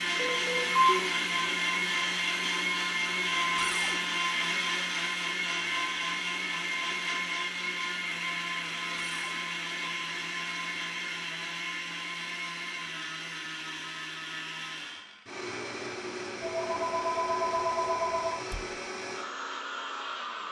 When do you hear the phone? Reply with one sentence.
You can hear the phone from 0.1 to 1.0 s and from 16.4 to 18.4 s.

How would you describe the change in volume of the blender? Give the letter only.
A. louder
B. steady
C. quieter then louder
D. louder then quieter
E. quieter
E.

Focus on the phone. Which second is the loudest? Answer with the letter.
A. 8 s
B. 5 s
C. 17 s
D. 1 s
D.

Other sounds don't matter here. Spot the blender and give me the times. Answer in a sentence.
You can hear the blender from 0.0 to 20.4 s.